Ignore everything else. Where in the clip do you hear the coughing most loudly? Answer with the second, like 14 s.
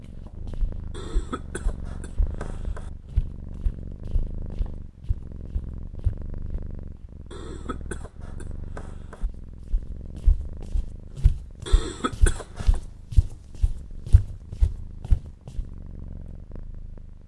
12 s.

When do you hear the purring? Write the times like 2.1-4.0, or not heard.
0.0-17.2.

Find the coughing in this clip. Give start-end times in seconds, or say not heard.
0.9-2.9, 7.3-9.2, 11.7-12.8.